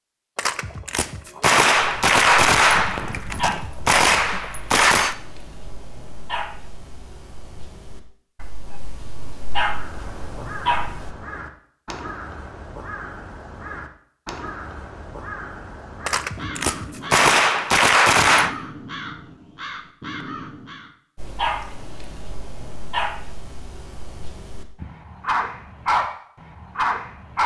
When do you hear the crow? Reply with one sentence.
You can hear the crow from 9.6 to 20.9 s.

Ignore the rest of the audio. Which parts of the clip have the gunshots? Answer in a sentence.
The gunshots can be heard from 0.3 to 5.2 s and from 16.1 to 18.6 s.